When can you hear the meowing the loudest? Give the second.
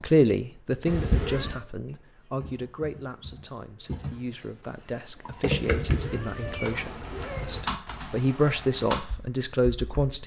1 s.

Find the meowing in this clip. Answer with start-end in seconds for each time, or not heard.
0.8-1.6, 5.6-7.6.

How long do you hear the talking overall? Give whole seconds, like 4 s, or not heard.
10 s.